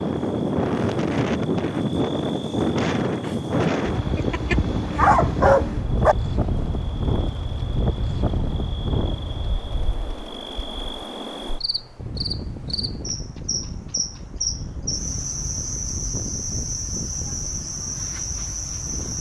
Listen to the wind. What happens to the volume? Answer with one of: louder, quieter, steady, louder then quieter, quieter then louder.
quieter.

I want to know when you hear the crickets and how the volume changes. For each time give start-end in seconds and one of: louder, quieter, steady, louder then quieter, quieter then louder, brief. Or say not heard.
0.0-19.1 louder.